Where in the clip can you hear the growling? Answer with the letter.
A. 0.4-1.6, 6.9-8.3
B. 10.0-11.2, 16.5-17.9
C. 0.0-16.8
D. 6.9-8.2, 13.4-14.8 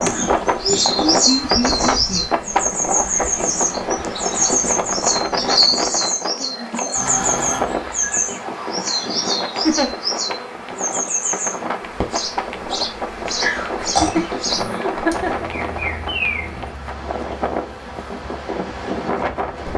D.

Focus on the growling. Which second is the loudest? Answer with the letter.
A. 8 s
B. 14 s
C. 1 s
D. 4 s
B.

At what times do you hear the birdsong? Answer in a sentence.
You can hear the birdsong from 0.0 to 16.8 s.